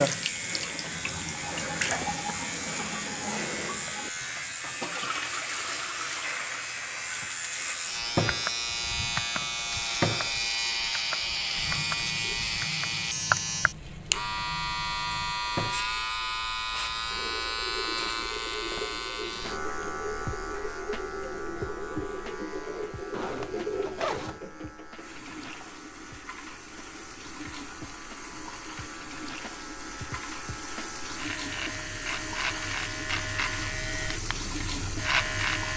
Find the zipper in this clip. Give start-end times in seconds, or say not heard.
23.1-24.4.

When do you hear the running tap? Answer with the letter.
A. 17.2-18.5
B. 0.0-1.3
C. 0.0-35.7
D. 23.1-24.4
C.